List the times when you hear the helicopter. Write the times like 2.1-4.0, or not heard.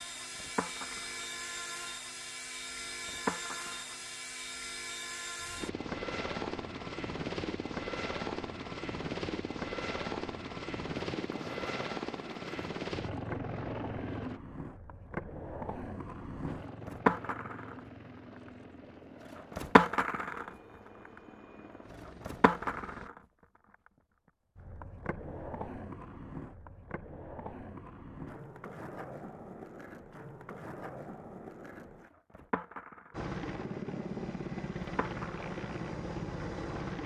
0.0-14.4, 16.4-23.1, 33.1-37.0.